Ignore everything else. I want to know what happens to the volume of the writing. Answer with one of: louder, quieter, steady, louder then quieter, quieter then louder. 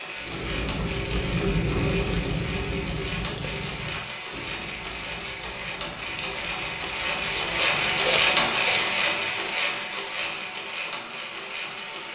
quieter.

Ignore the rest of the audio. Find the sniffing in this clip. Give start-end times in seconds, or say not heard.
7.3-8.8.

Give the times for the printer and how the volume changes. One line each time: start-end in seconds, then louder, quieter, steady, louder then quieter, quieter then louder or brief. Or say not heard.
0.0-12.1 louder then quieter.